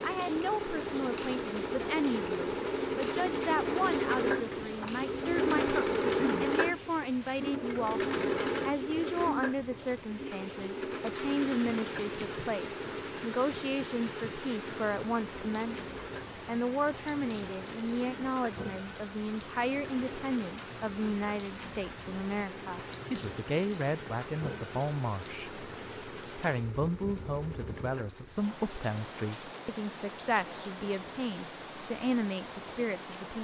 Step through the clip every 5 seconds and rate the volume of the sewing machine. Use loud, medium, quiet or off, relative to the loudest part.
loud, loud, medium, quiet, quiet, quiet, off.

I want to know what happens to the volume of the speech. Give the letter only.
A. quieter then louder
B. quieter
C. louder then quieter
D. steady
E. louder
D.